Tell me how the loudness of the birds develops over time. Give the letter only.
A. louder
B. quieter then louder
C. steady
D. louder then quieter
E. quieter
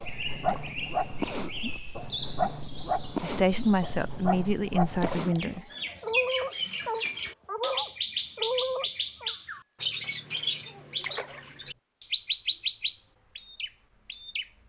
A.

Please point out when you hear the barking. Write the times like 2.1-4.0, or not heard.
0.0-9.3.